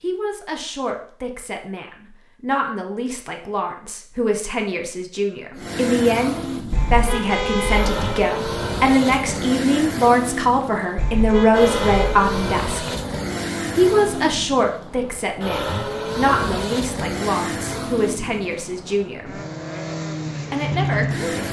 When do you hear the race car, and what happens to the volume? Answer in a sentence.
You can hear the race car from 5.5 to 21.4 s, at a steady volume.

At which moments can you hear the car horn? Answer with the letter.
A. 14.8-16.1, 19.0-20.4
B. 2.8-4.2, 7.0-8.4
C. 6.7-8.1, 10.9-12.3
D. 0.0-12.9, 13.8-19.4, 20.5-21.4
C.